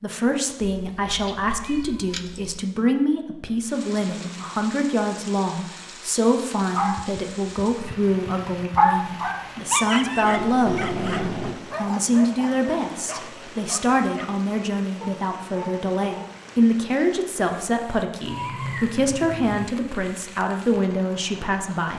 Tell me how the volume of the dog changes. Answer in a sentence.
The loudness of the dog goes down.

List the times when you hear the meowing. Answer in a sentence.
You can hear the meowing from 0.6 to 2.6 s, from 10.2 to 11.6 s and from 18.2 to 19.6 s.